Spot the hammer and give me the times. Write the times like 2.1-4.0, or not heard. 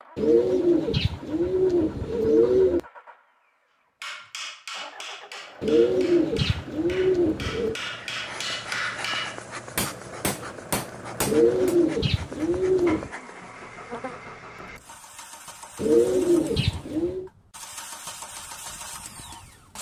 4.0-11.8.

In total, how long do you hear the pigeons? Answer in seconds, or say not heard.
8 s.